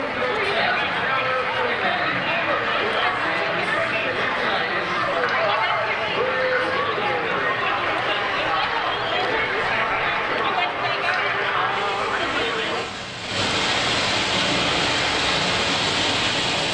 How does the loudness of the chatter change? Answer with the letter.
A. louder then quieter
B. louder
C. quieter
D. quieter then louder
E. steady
E.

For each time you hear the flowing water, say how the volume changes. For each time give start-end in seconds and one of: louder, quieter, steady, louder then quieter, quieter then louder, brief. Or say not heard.
0.2-16.6 louder.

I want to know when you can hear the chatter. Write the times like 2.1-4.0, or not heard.
0.0-12.9.